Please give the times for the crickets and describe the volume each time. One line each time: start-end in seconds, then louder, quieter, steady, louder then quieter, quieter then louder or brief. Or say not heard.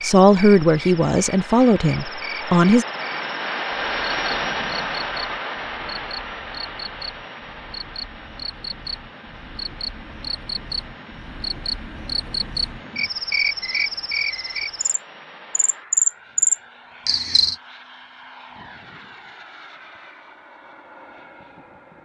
0.0-17.6 louder.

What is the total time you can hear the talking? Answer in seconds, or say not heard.
3 s.